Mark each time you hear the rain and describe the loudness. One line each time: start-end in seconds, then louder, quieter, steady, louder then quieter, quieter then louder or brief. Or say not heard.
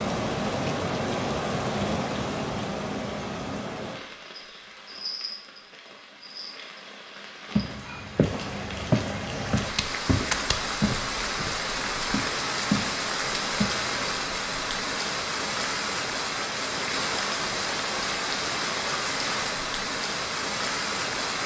0.0-21.4 quieter then louder.